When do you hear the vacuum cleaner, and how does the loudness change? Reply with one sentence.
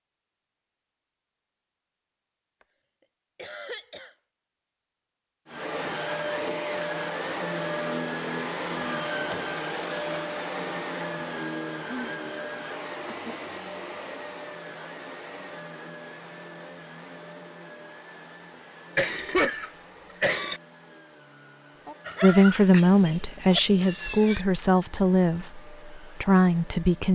You can hear the vacuum cleaner from 5.5 to 27.0 s, getting quieter.